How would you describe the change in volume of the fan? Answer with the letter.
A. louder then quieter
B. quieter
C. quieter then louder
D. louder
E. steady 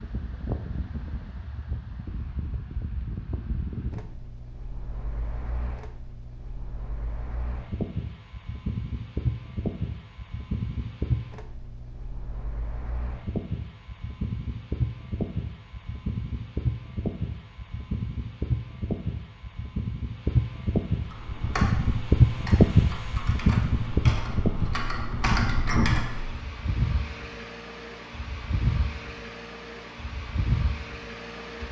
A.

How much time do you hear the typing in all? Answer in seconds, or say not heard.
5 s.